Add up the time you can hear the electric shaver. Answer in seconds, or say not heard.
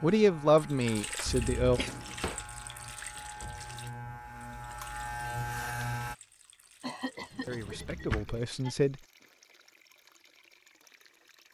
6 s.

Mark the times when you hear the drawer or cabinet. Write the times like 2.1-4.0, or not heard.
1.6-2.5, 7.3-8.4.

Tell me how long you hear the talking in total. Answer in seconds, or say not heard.
3 s.